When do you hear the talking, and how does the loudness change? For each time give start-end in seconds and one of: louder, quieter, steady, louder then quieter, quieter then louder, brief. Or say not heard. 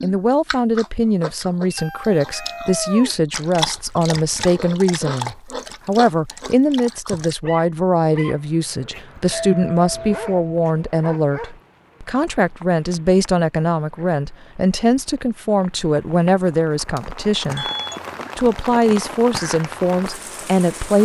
0.0-17.7 steady
18.4-21.0 brief.